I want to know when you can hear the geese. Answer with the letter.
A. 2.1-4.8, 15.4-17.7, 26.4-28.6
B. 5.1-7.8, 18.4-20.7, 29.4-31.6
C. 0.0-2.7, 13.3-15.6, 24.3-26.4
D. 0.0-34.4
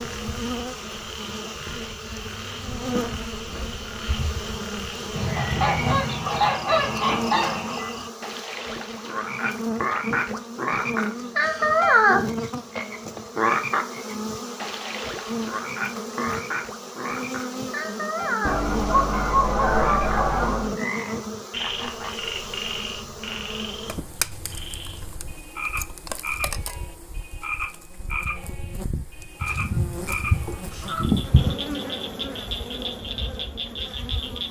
B.